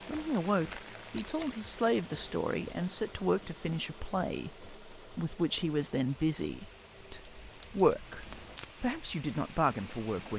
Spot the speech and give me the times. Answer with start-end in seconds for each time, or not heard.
0.1-10.3.